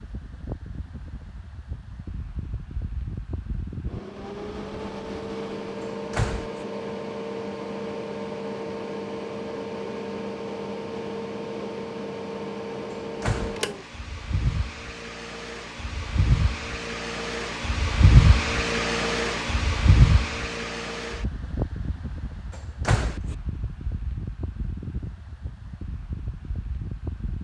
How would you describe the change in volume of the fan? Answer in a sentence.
The volume of the fan goes up, then down.